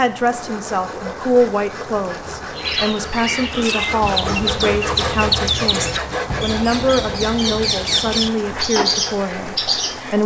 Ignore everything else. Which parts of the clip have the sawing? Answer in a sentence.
The sawing can be heard from 0.3 to 10.0 s.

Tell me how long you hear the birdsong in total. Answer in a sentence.
The birdsong can be heard for 8 seconds in total.